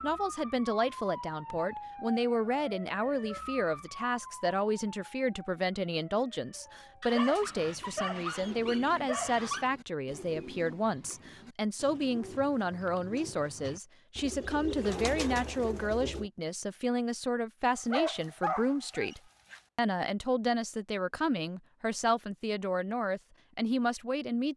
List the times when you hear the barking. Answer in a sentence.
The barking can be heard from 7.0 to 9.7 s and from 17.8 to 19.6 s.